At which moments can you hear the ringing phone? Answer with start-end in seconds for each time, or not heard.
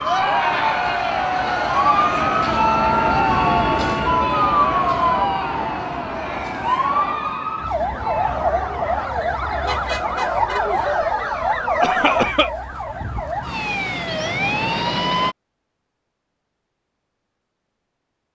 not heard.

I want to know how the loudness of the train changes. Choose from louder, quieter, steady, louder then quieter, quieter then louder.
louder then quieter.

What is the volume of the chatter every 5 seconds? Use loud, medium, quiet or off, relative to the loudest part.
loud, medium, loud, off.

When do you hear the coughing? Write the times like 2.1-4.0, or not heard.
11.8-12.5.